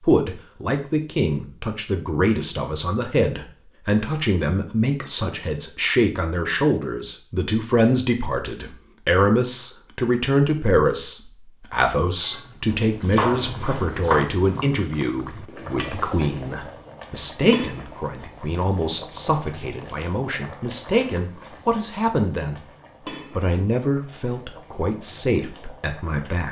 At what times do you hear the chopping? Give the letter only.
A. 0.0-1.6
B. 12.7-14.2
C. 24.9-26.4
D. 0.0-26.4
B.